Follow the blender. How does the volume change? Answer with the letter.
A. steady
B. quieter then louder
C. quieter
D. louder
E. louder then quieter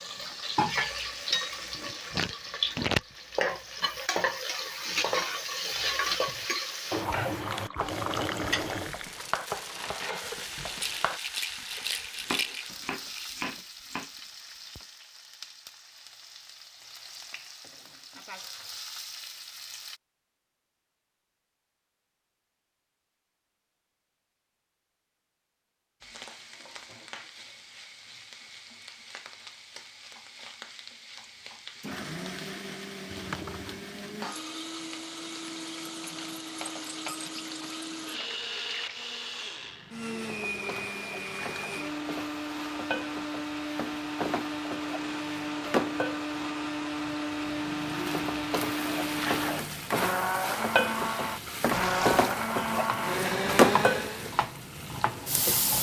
D.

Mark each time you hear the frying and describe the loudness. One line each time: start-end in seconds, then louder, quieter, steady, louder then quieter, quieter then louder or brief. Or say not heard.
0.0-20.0 quieter
26.0-55.7 louder.